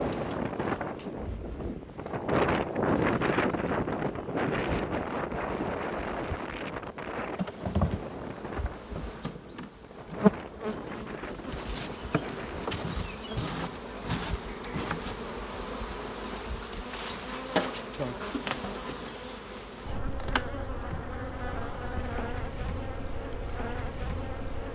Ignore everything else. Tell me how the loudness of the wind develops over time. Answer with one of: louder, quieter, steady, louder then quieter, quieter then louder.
quieter.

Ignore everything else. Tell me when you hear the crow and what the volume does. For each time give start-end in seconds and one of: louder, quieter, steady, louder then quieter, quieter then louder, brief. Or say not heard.
not heard.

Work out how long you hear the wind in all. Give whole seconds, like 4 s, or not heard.
13 s.